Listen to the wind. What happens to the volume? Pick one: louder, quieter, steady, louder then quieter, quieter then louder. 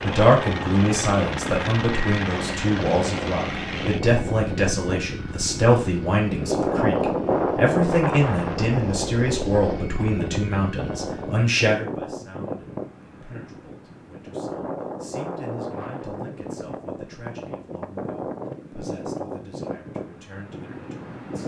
louder then quieter.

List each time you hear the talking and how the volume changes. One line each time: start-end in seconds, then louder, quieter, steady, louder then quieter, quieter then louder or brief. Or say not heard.
0.0-21.4 quieter.